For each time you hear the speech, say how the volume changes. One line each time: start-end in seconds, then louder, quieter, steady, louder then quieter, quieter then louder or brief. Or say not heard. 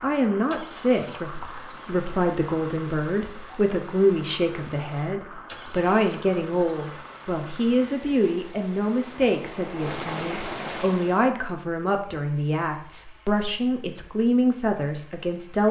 0.0-15.6 steady.